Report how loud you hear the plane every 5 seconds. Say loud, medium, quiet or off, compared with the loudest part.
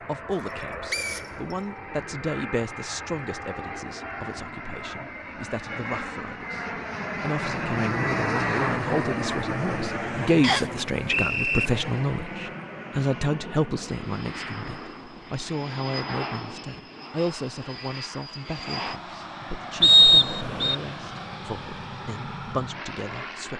medium, loud, medium, medium, medium.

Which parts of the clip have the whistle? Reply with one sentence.
The whistle can be heard from 0.9 to 1.6 s, from 10.4 to 11.7 s and from 19.8 to 20.8 s.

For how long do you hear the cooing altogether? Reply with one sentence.
The cooing can't be heard in this clip.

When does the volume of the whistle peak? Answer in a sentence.
The volume of the whistle peaks at 20 seconds.